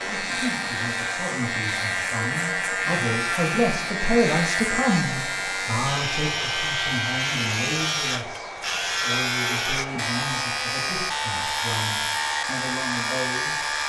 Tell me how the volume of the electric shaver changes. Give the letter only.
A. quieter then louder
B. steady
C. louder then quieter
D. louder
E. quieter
B.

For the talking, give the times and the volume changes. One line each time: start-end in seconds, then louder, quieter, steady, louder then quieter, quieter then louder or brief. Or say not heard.
0.0-13.6 louder then quieter.